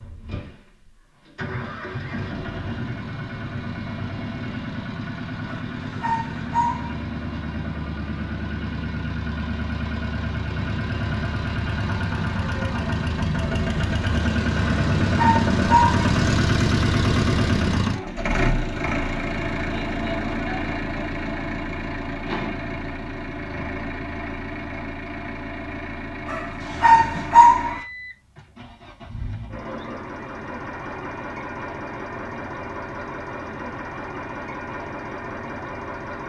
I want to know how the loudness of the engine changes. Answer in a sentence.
The loudness of the engine goes up, then down.